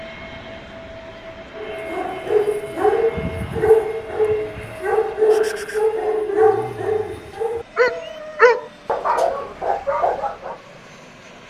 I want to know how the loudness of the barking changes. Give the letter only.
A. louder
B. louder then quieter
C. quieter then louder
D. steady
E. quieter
D.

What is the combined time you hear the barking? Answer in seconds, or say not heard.
9 s.